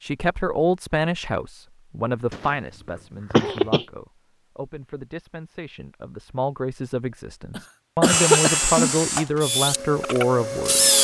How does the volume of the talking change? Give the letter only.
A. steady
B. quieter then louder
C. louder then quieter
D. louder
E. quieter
B.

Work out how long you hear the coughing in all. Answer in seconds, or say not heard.
3 s.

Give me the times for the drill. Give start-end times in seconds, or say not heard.
8.1-10.9.